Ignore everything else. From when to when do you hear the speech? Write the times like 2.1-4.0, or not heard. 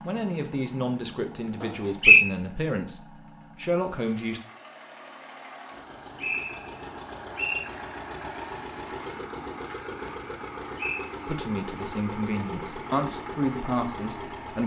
0.1-4.4, 11.2-14.6.